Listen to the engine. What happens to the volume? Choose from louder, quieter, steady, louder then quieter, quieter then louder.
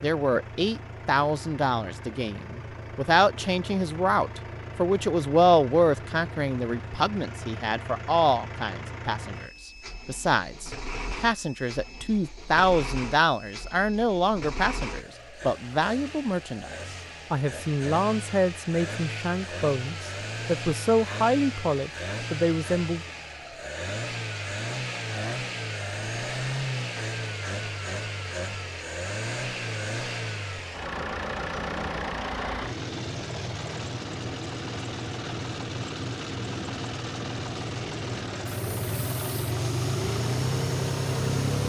louder.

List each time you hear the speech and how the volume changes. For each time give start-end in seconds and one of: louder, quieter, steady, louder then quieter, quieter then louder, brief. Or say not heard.
0.0-23.0 steady.